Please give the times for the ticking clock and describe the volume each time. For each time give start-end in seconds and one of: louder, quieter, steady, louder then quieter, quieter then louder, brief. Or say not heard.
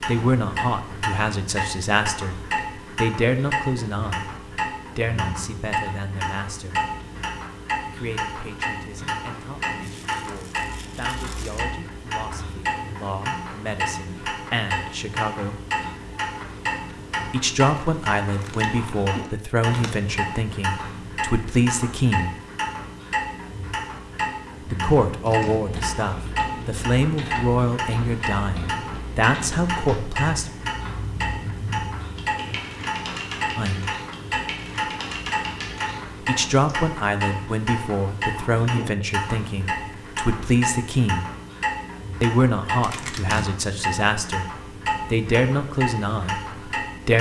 0.0-47.1 steady.